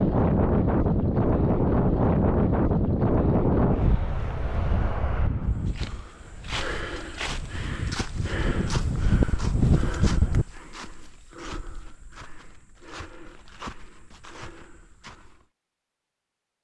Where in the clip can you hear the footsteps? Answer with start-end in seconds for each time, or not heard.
5.5-15.4.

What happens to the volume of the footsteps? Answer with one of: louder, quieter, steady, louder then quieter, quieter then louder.
quieter.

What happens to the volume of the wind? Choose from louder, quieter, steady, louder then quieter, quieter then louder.
quieter then louder.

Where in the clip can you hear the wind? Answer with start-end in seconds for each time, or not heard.
0.0-10.4.